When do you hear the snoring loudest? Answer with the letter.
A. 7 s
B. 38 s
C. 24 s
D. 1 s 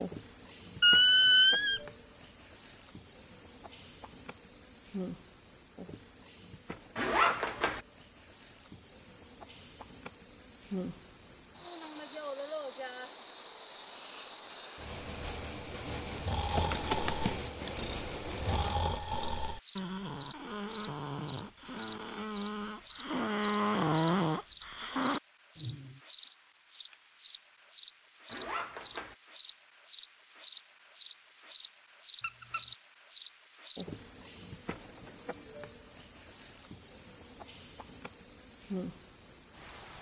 C.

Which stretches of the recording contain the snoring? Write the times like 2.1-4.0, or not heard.
16.1-26.0.